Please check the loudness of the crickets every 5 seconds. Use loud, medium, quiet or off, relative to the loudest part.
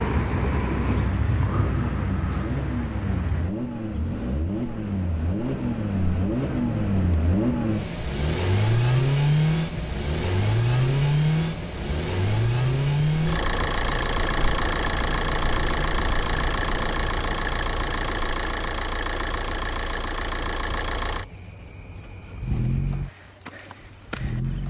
loud, medium, medium, medium, medium.